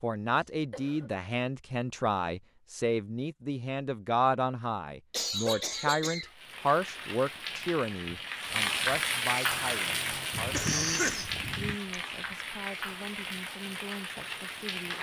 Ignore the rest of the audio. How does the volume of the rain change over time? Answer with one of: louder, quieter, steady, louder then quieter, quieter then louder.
louder then quieter.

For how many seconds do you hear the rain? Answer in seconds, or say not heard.
9 s.